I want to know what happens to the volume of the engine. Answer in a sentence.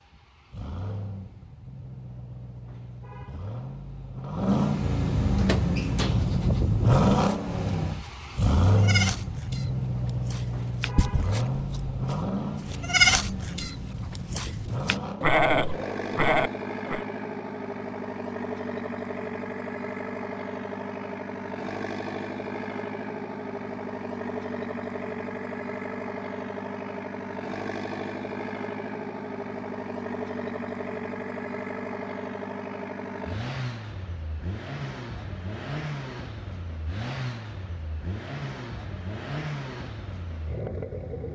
The volume of the engine goes down.